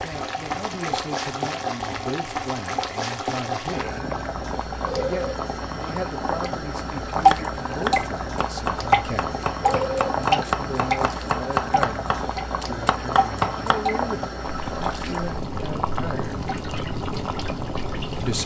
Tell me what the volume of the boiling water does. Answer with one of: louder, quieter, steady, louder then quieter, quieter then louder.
steady.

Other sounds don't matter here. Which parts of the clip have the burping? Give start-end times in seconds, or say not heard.
4.8-5.3, 9.6-10.1.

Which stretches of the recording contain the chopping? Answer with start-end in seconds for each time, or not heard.
7.2-13.8.